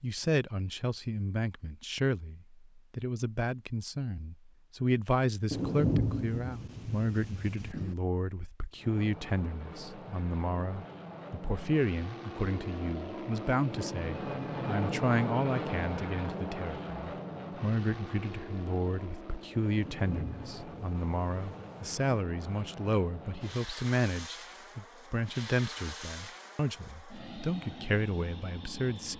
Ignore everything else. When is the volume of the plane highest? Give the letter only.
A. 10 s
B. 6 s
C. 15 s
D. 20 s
C.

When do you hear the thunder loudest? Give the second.
6 s.